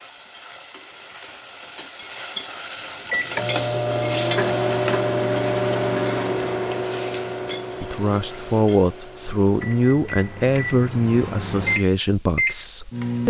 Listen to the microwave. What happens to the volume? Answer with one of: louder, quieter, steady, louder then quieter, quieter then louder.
quieter then louder.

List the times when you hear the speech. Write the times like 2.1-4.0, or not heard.
7.8-13.2.